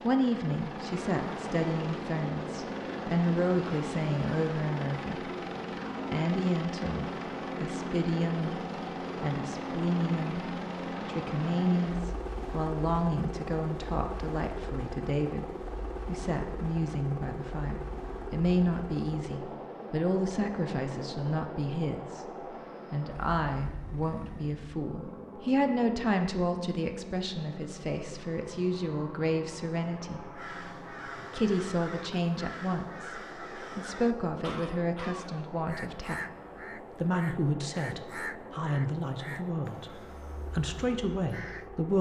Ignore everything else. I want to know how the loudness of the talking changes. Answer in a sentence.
The volume of the talking stays about the same.